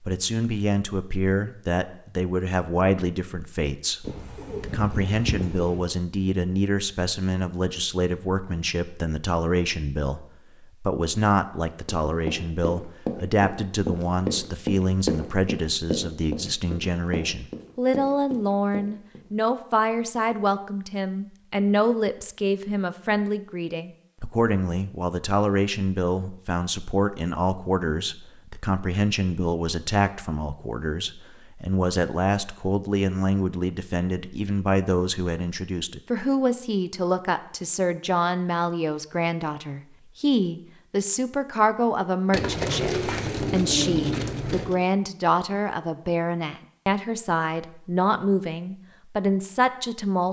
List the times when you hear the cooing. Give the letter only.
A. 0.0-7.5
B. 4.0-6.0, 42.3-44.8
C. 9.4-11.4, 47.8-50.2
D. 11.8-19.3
B.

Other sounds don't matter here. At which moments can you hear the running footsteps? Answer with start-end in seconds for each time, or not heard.
11.8-19.3.